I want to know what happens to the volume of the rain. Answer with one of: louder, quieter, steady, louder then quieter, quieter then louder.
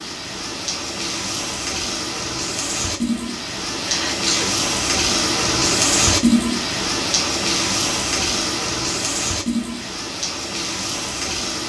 louder then quieter.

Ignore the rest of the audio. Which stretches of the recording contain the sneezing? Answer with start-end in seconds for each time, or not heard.
3.8-4.6.